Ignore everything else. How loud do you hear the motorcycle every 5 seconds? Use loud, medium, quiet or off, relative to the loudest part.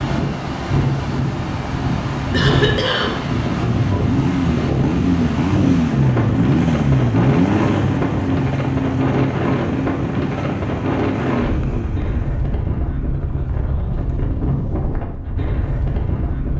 loud, loud, medium, off.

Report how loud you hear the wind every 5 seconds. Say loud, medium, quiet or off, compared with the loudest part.
loud, loud, loud, medium.